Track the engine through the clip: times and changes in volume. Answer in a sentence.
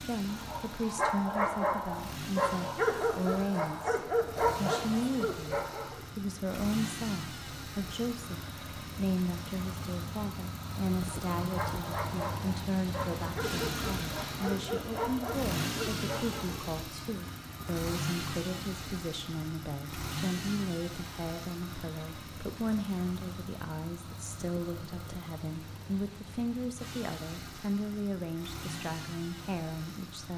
The engine can be heard from 0.0 to 30.3 s, getting louder then quieter.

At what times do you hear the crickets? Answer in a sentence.
The crickets can't be heard in this clip.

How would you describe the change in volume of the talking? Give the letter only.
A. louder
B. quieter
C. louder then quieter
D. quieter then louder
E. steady
E.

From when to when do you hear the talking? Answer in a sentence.
The talking can be heard from 0.0 to 30.3 s.